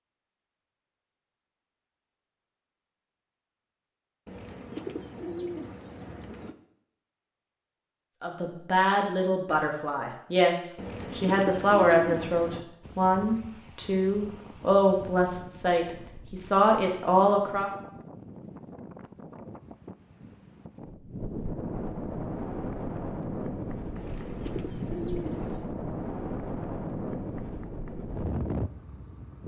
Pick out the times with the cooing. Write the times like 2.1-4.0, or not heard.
4.2-6.5, 10.8-12.7, 23.9-25.8.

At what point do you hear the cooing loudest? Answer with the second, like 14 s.
12 s.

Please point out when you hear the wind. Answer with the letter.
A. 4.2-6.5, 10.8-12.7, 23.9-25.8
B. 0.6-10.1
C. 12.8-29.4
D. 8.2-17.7
C.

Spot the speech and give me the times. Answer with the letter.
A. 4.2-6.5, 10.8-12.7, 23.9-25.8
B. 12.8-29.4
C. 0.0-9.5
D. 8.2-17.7
D.